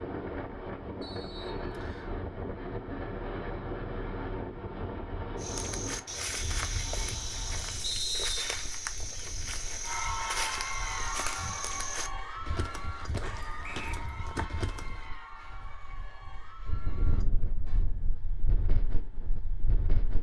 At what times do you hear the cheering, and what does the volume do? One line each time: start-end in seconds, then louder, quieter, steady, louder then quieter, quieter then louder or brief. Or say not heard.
9.8-17.9 quieter.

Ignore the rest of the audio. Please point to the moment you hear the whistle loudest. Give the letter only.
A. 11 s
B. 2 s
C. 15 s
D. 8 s
D.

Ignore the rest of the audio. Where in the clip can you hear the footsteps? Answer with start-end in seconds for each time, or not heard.
5.3-15.1.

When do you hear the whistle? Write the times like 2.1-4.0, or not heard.
1.0-2.1, 7.8-8.7, 13.6-14.1.